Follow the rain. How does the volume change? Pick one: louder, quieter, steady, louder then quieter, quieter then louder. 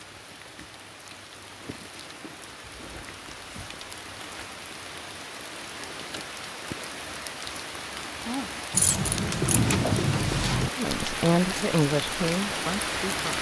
louder.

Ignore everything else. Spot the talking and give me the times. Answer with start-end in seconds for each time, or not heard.
10.8-13.3.